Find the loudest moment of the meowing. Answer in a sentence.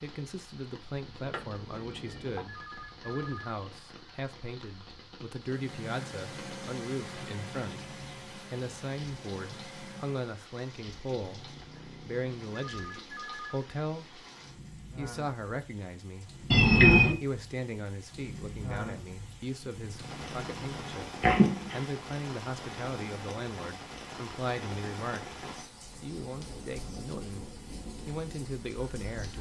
The loudest moment of the meowing is at 17 seconds.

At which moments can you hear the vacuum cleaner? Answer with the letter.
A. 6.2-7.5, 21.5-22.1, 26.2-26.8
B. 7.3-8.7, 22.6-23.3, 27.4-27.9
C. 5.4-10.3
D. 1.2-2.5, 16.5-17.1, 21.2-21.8
C.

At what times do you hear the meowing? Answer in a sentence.
You can hear the meowing from 1.2 to 2.5 s, from 16.5 to 17.1 s and from 21.2 to 21.8 s.